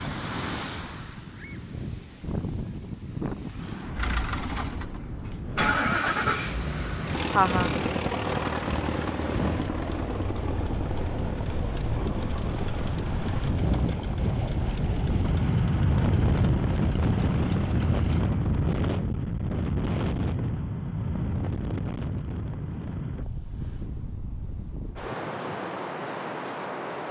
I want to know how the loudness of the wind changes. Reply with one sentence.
The loudness of the wind goes up, then down.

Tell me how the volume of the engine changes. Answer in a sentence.
The loudness of the engine goes down.